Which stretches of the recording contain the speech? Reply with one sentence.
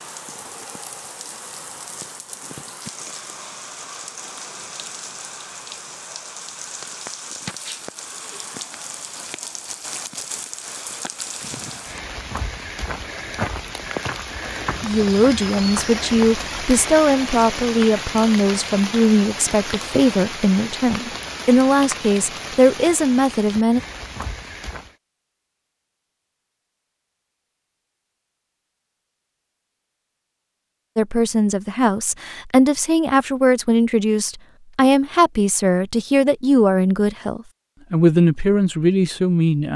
You can hear the speech from 14.8 to 23.8 s and from 30.9 to 39.7 s.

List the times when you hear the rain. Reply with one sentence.
The rain can be heard from 0.0 to 24.9 s.